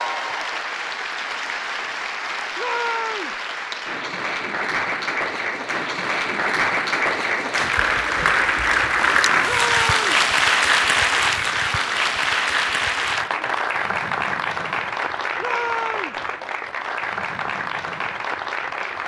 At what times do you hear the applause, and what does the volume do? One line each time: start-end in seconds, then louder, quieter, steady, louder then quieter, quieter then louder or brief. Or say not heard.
0.0-19.0 louder then quieter.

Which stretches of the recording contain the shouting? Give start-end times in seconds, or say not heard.
2.5-3.4, 9.4-10.1, 15.3-16.2.